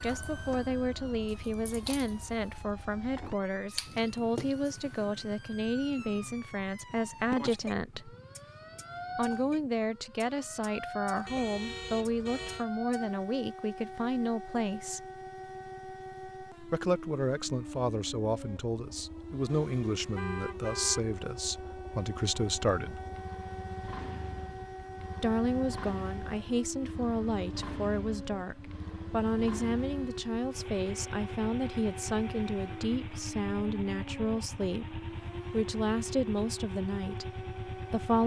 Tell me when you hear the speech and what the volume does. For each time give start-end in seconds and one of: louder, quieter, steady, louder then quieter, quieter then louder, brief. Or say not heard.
0.0-8.2 steady
9.2-15.1 steady
16.7-22.9 steady
25.2-38.2 steady.